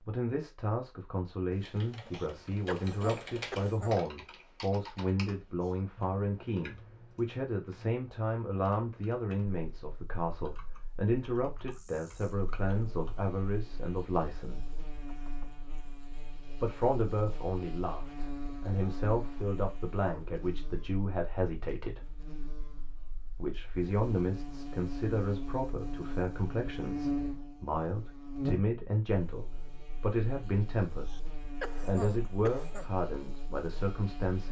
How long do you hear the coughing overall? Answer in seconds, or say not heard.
4 s.